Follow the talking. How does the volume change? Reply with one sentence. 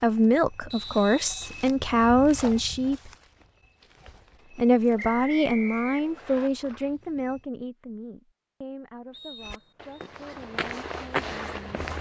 The volume of the talking goes down.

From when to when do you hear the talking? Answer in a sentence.
You can hear the talking from 0.0 to 3.1 s and from 4.5 to 11.7 s.